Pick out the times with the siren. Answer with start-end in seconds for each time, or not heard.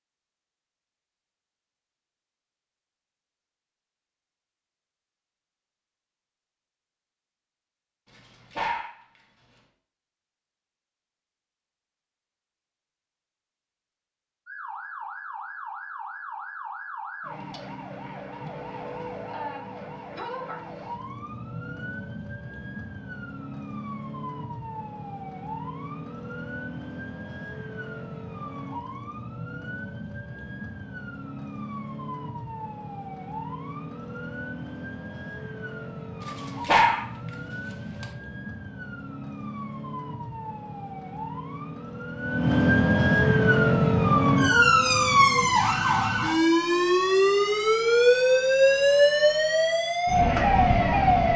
14.4-51.3.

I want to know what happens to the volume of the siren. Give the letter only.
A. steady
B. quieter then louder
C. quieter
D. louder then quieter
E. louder
E.